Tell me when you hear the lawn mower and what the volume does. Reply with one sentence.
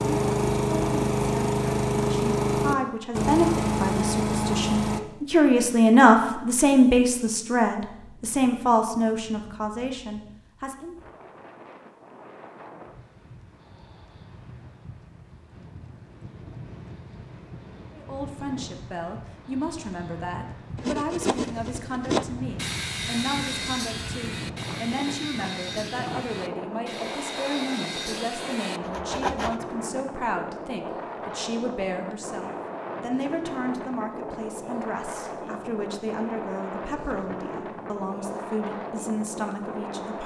The lawn mower can be heard from 0.0 to 5.0 s, at a steady volume.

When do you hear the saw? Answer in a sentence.
The saw can be heard from 20.8 to 29.6 s.